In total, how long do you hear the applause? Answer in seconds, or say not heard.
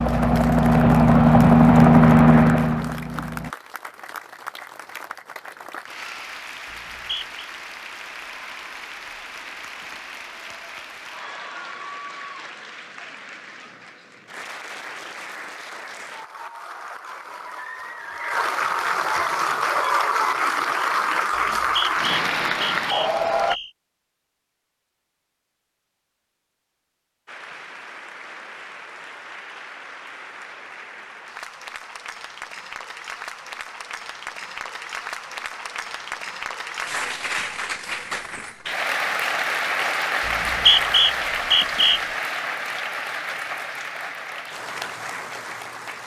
42 s.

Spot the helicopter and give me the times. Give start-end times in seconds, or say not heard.
0.0-3.5.